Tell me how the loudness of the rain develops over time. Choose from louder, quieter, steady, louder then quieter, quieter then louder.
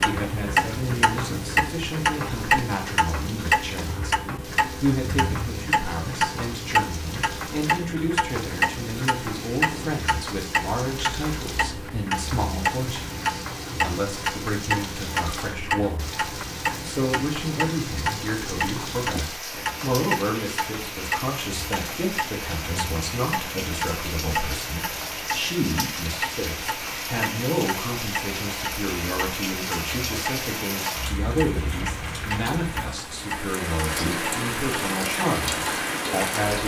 louder.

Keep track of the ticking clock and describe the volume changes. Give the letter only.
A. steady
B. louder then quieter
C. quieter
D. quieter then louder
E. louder
C.